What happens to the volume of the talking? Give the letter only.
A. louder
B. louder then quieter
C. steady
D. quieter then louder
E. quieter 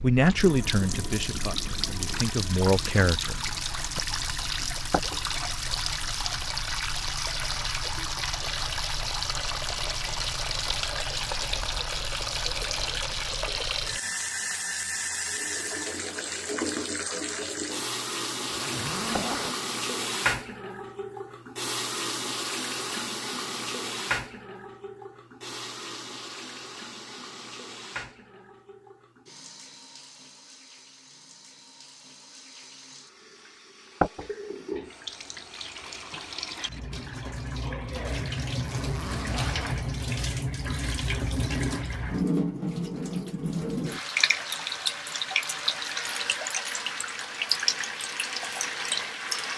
D.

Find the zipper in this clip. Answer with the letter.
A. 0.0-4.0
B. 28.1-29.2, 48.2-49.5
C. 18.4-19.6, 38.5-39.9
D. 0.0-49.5
C.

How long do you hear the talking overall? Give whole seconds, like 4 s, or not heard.
4 s.